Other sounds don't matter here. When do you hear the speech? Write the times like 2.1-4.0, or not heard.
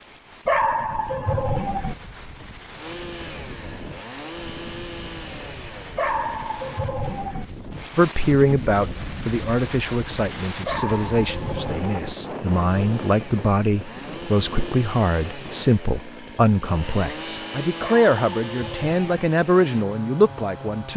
8.0-20.9.